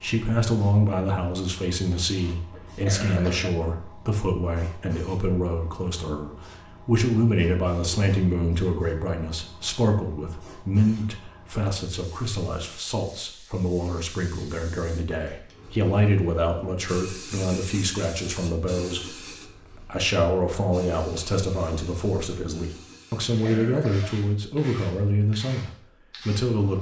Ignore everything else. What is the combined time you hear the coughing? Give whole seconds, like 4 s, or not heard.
2 s.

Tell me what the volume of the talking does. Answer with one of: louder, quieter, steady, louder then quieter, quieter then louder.
steady.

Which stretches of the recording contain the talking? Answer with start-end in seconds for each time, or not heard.
0.0-26.7.